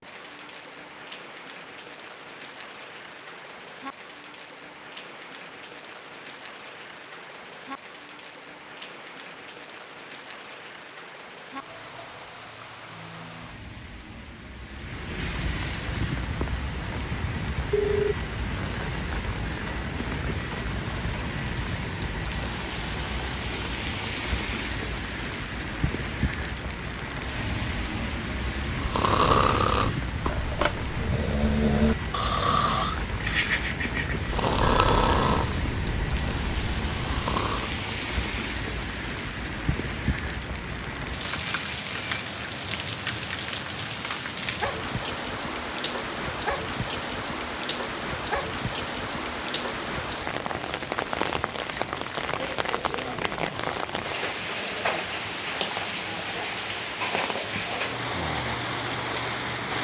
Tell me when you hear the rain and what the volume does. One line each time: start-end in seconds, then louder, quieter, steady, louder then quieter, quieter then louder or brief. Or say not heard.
0.0-59.8 louder.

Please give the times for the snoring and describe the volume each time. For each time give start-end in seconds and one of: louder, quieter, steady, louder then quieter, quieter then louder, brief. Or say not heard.
28.6-37.7 quieter.